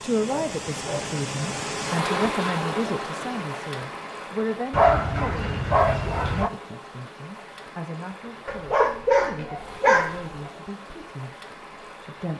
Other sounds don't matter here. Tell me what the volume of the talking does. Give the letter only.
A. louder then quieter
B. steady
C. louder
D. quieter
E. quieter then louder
D.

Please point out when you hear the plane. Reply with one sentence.
You can't hear the plane here.